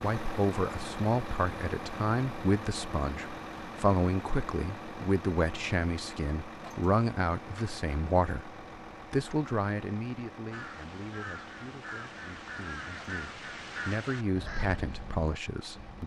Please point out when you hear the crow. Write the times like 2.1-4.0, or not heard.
10.5-16.0.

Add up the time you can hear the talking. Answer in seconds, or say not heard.
16 s.